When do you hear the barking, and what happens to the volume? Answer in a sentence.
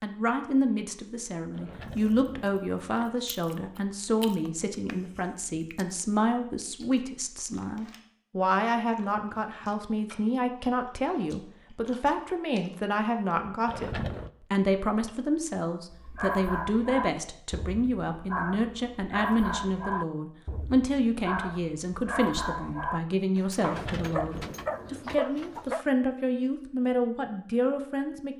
The barking can be heard from 15.9 to 25.9 s, at a steady volume.